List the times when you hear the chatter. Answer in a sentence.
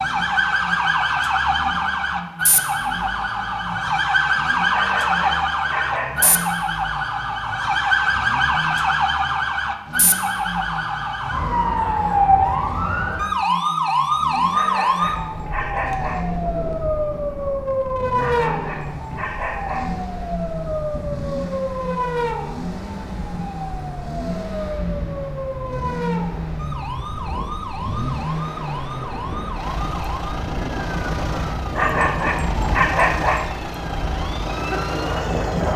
The chatter can't be heard in this clip.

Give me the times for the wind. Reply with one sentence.
You can hear the wind from 15.2 to 35.7 s.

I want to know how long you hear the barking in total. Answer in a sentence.
The barking can be heard for 7 seconds in total.